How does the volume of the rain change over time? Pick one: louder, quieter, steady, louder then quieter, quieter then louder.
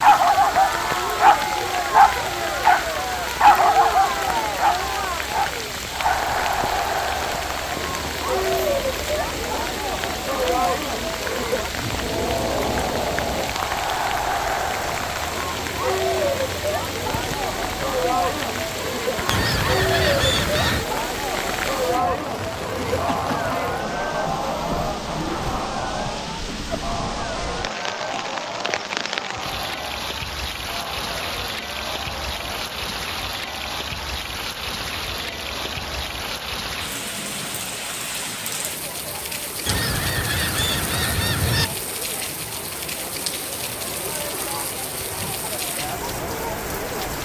steady.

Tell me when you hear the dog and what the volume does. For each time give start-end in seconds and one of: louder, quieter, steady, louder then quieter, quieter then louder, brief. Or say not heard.
0.0-6.3 quieter.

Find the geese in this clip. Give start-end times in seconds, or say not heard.
19.3-20.9, 39.6-41.6.